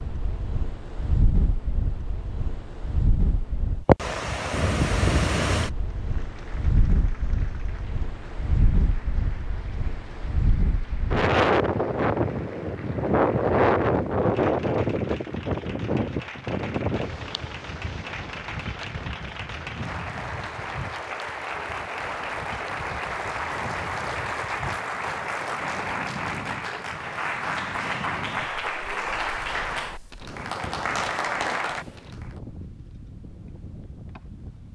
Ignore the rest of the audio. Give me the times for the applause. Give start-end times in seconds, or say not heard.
5.8-32.4.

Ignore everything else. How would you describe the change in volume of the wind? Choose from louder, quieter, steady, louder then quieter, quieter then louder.
quieter.